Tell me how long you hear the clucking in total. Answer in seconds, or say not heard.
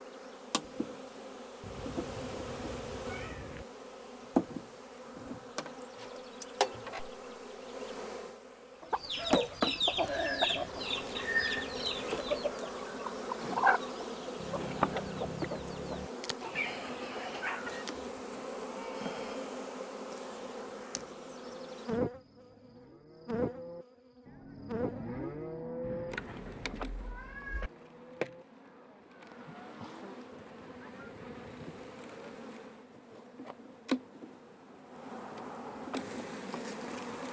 9 s.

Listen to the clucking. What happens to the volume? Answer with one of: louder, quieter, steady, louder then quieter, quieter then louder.
quieter.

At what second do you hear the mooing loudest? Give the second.
26 s.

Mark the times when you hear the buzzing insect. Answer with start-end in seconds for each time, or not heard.
0.0-37.2.